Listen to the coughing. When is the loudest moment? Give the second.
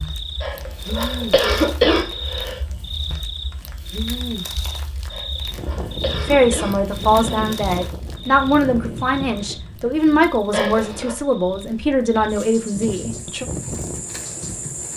2 s.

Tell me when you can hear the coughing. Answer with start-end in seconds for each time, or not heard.
0.4-2.6, 5.1-7.5, 10.5-11.2.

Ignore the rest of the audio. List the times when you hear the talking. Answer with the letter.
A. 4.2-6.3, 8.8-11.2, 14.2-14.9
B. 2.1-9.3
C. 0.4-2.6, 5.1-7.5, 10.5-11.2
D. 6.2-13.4
D.